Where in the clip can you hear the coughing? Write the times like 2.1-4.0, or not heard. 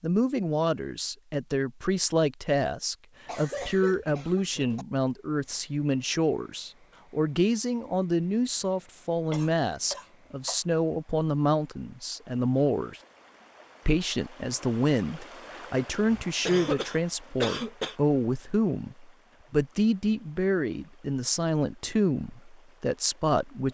3.2-4.8, 9.3-10.6, 16.4-17.9.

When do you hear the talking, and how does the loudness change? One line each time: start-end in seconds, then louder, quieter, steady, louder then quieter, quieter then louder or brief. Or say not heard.
0.0-13.0 steady
13.8-23.6 steady.